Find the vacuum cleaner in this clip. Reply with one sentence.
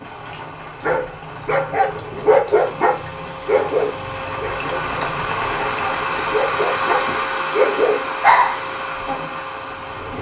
You can hear the vacuum cleaner from 2.5 to 10.1 s.